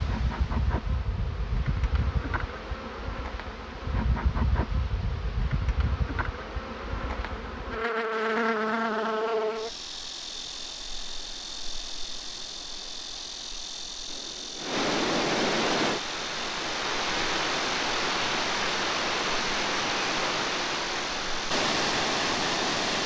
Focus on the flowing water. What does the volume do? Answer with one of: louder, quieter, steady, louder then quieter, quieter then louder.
louder.